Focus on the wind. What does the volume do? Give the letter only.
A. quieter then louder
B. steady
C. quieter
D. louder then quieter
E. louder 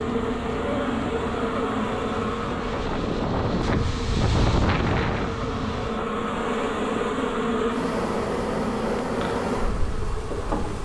D.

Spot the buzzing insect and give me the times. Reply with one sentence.
The buzzing insect can be heard from 0.0 to 10.7 s.